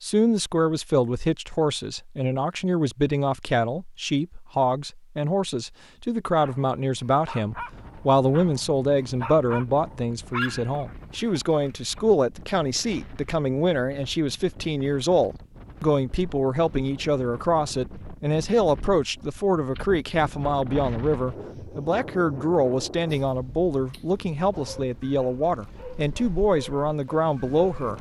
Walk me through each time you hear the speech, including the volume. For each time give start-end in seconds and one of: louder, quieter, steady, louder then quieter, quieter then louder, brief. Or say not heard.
0.0-27.9 steady.